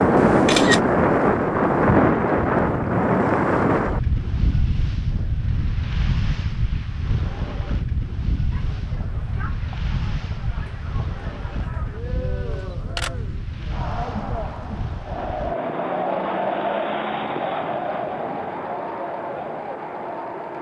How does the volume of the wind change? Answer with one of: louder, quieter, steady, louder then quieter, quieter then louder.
quieter.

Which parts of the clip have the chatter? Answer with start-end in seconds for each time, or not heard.
8.5-20.5.